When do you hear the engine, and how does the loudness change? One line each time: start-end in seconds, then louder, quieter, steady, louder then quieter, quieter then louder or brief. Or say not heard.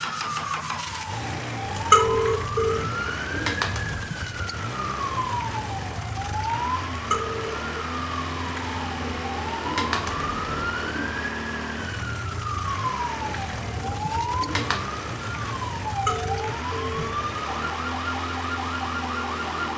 0.0-19.7 steady.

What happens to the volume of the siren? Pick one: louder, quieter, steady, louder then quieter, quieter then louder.
steady.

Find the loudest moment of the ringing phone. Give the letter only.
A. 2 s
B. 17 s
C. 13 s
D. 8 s
A.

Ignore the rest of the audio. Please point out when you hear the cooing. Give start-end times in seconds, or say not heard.
2.2-4.1, 8.4-11.2, 13.2-14.8.